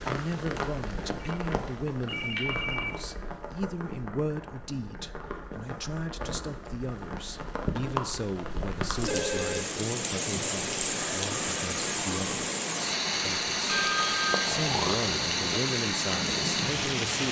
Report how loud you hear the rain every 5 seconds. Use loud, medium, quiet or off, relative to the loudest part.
medium, medium, loud, loud.